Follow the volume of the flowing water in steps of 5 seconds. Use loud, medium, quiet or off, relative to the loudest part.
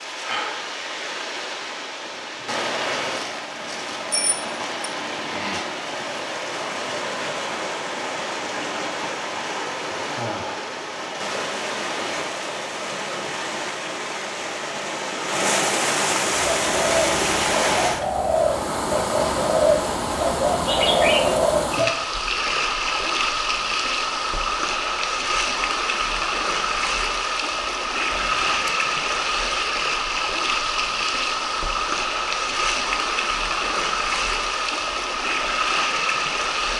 medium, medium, medium, loud, loud, loud, loud, loud.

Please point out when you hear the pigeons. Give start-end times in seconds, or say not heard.
16.3-21.9.